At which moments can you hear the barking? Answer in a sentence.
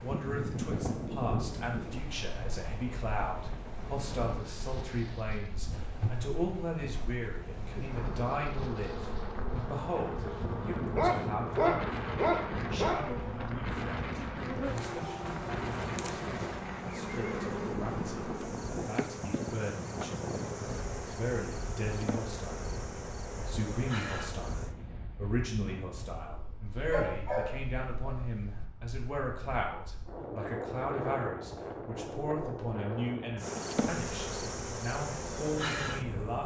The barking can be heard from 10.9 to 13.0 s and from 26.6 to 28.6 s.